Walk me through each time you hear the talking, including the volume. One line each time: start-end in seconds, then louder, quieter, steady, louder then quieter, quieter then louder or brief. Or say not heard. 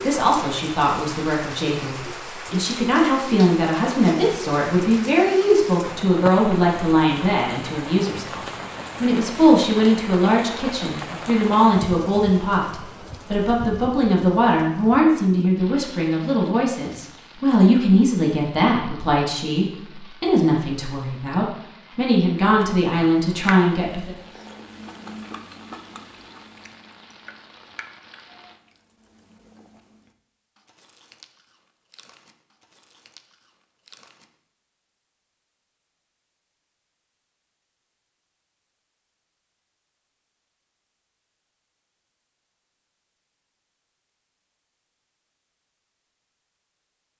0.0-24.1 steady.